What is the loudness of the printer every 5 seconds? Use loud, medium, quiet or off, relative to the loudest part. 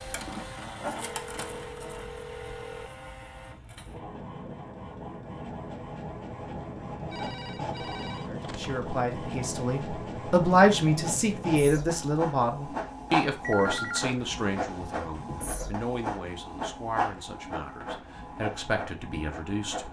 medium, loud, loud, loud.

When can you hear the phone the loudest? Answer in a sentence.
The volume of the phone peaks at 14 seconds.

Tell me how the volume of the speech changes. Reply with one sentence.
The loudness of the speech goes down.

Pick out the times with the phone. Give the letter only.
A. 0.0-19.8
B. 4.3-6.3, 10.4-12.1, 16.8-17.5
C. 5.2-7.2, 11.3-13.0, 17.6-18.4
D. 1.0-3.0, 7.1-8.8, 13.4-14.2
D.